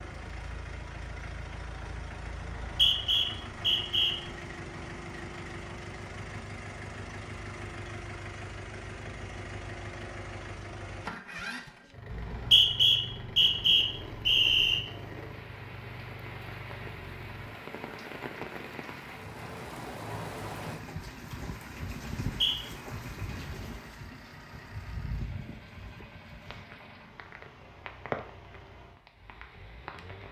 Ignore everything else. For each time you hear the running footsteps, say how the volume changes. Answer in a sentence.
The running footsteps can't be heard in this clip.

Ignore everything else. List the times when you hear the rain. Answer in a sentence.
The rain can be heard from 13.3 to 30.2 s.